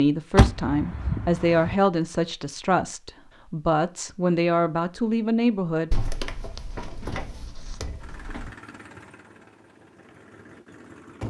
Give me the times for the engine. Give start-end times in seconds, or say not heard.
8.0-11.2.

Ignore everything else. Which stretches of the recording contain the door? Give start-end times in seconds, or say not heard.
0.3-1.8, 5.9-8.6.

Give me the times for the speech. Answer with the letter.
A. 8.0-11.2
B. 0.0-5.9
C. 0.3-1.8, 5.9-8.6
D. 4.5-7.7
B.